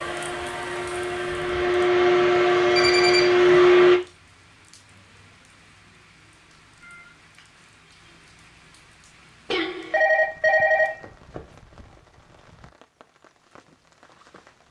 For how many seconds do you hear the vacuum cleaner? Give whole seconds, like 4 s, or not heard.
4 s.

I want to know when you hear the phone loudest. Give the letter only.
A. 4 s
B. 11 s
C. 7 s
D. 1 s
B.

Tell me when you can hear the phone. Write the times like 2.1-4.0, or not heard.
2.8-3.4, 9.5-11.4.